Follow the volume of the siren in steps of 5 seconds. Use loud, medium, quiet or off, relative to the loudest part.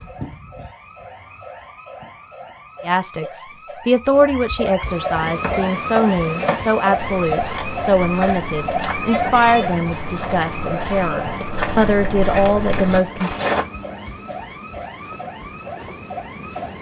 medium, loud, medium, medium.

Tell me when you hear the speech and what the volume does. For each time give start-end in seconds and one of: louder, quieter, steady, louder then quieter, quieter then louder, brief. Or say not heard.
2.8-13.4 steady.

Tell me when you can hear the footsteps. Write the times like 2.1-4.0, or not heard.
5.2-13.7.